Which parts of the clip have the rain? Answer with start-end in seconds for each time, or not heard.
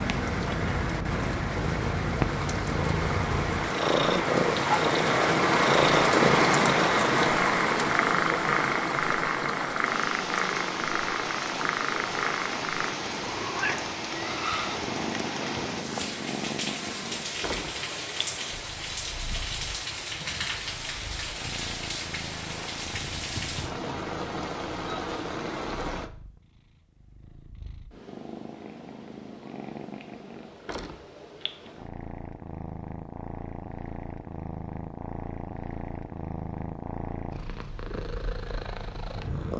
0.0-26.1.